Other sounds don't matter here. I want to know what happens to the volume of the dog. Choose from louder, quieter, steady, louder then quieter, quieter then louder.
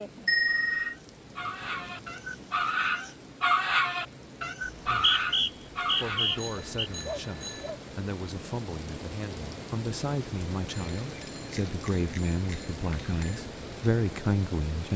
louder then quieter.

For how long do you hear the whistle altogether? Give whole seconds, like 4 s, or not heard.
2 s.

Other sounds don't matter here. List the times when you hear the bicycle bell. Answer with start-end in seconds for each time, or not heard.
0.2-0.9, 6.3-7.7, 10.7-13.4.